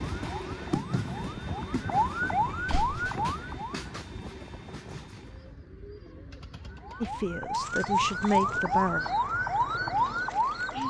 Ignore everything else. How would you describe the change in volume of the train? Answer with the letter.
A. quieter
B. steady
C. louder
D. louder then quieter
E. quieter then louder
A.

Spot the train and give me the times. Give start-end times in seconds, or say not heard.
0.0-5.5.